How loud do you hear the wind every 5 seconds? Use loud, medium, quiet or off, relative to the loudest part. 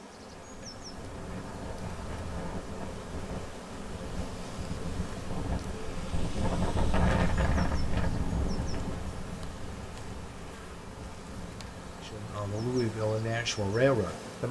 medium, loud, quiet.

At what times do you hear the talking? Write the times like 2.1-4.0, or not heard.
12.0-14.4.